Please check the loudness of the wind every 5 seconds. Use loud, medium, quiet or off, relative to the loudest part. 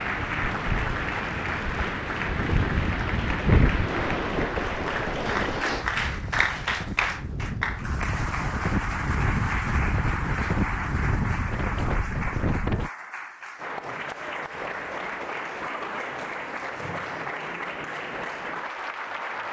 loud, loud, loud, off.